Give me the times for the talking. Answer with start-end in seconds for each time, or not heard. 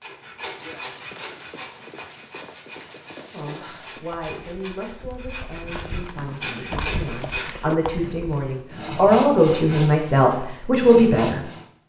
3.3-11.4.